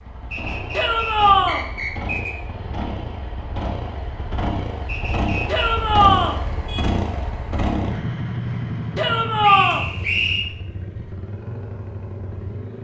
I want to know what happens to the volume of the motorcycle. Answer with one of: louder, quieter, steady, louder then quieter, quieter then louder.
louder then quieter.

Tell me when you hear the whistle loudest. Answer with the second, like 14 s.
10 s.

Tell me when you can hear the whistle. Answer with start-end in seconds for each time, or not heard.
0.3-2.4, 4.8-5.8, 9.4-10.4.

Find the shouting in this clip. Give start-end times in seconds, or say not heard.
0.7-1.6, 5.5-6.4, 8.9-9.8.